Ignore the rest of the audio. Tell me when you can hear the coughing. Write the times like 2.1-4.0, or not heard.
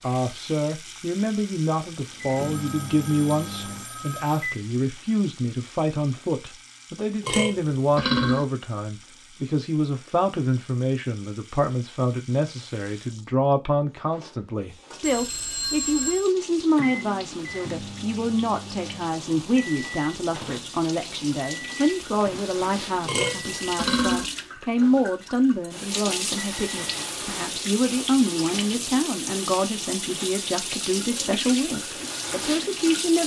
not heard.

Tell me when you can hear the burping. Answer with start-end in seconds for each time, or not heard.
7.2-8.4, 23.1-24.2.